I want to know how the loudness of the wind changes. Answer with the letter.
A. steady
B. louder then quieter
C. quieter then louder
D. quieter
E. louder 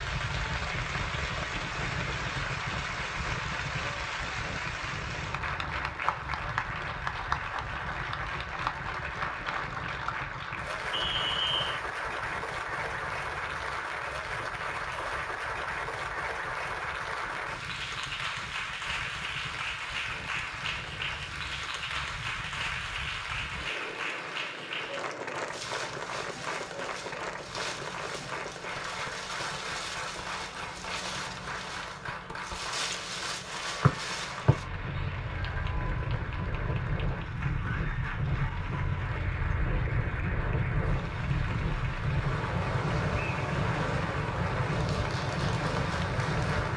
C.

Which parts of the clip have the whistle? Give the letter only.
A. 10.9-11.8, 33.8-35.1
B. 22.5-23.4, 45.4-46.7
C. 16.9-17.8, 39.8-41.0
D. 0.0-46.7
A.